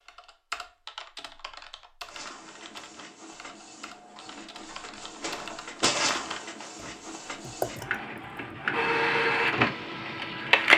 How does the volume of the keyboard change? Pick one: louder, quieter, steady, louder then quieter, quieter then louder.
quieter then louder.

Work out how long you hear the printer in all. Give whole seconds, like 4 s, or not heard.
9 s.